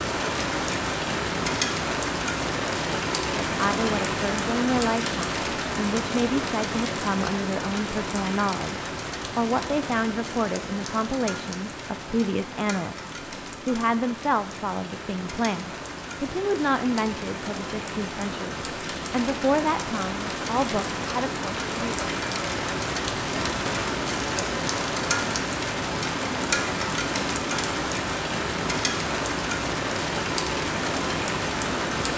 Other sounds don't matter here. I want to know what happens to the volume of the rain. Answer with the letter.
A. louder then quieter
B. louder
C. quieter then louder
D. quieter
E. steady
C.